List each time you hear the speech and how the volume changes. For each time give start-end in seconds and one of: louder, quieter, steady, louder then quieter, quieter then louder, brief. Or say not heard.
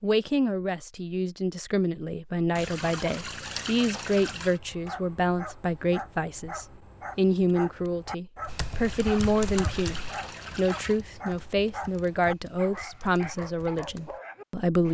0.0-14.9 steady.